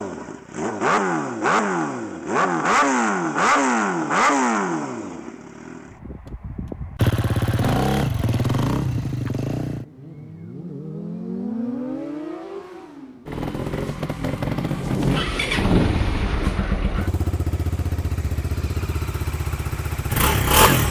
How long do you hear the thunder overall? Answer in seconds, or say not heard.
2 s.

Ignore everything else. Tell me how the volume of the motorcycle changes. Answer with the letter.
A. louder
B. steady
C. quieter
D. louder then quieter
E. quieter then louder
C.